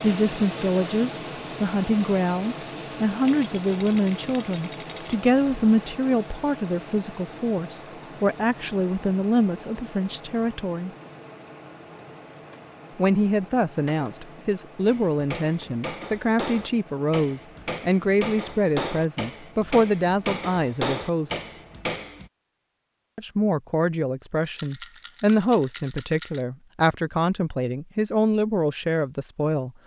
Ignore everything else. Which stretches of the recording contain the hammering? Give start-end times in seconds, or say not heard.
14.8-22.3.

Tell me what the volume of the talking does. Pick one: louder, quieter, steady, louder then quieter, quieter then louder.
steady.